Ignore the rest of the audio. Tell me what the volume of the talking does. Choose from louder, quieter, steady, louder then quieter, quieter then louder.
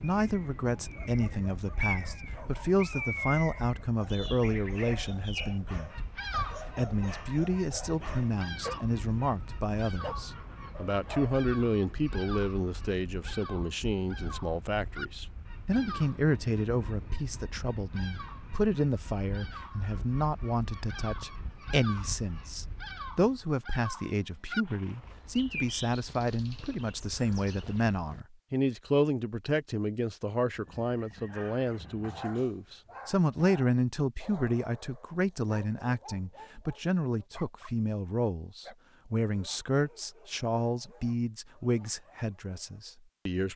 steady.